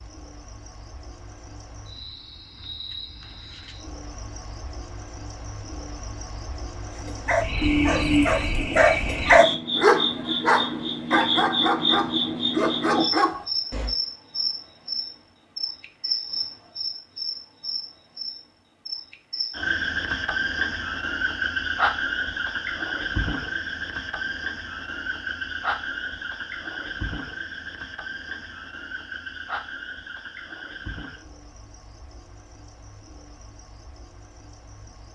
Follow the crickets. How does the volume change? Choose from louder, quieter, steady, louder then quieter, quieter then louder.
louder then quieter.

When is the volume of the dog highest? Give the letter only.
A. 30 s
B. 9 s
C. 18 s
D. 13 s
B.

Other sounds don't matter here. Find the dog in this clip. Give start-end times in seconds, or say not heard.
7.0-13.9.